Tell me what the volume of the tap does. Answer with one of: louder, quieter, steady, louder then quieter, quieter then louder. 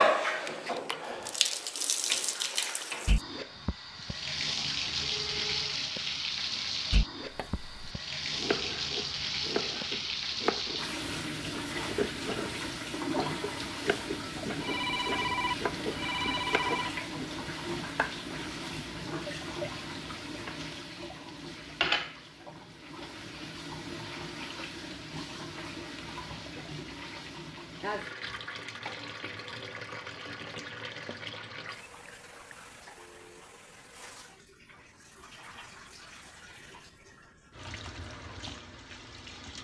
quieter.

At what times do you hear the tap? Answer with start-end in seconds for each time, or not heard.
0.0-39.6.